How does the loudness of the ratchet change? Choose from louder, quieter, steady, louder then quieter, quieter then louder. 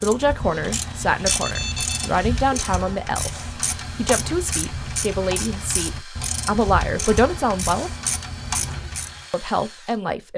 steady.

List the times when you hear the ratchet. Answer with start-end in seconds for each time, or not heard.
0.0-9.2.